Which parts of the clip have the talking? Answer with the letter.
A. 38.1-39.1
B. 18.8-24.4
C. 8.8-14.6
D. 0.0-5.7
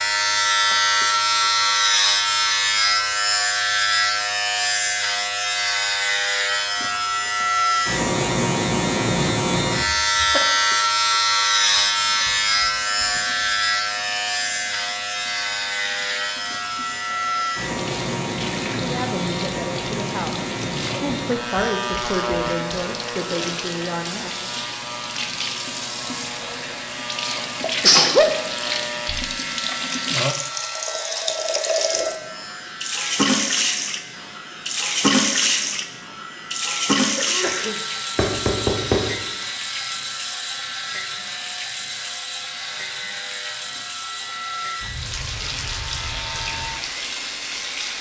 B.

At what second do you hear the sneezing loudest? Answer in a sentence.
The volume of the sneezing peaks at 28 seconds.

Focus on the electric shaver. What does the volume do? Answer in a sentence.
The loudness of the electric shaver goes down.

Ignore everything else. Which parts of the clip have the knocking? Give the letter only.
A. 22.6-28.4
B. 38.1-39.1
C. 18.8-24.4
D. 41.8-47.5
B.